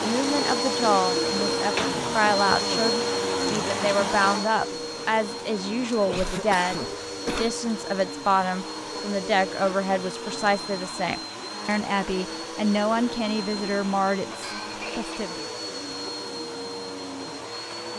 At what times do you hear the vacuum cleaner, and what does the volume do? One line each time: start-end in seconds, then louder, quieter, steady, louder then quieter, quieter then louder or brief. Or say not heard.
0.0-17.9 quieter.